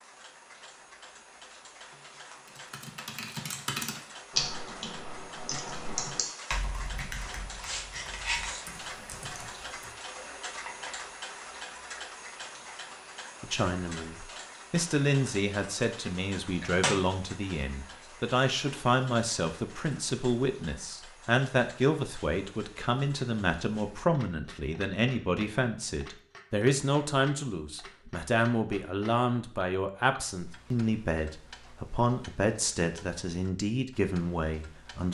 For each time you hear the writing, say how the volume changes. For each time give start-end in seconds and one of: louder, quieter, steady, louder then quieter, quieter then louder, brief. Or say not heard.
not heard.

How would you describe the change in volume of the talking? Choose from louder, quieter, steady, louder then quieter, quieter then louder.
steady.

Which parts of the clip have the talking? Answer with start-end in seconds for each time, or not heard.
13.4-35.0.